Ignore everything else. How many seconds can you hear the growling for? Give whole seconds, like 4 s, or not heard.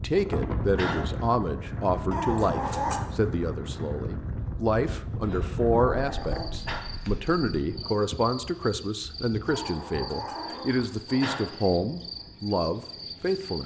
4 s.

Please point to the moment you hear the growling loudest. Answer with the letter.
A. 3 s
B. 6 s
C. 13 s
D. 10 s
A.